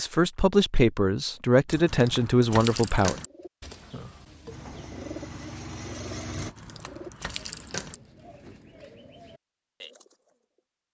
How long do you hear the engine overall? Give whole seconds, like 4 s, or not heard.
2 s.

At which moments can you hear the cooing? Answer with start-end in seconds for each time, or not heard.
3.2-10.4.